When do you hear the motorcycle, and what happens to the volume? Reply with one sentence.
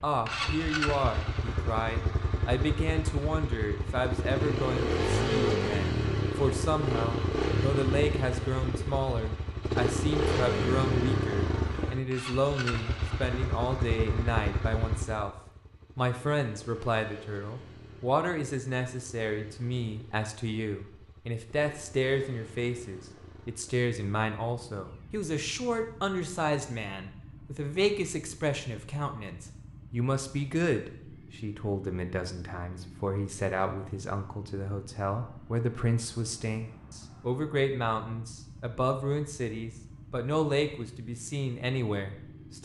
You can hear the motorcycle from 0.0 to 42.5 s, getting quieter.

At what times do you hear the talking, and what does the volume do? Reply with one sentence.
The talking can be heard from 0.0 to 15.3 s, at a steady volume; and from 15.9 to 42.5 s, at a steady volume.